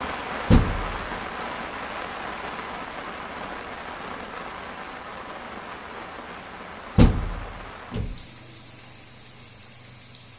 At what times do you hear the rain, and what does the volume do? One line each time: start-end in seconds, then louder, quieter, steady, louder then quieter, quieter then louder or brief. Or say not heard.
0.0-10.3 quieter.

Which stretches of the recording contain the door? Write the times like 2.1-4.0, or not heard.
0.5-1.1, 7.0-8.2.